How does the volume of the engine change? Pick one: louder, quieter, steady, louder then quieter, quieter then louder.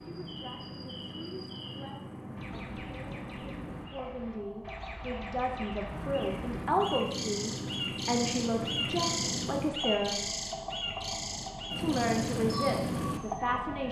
louder.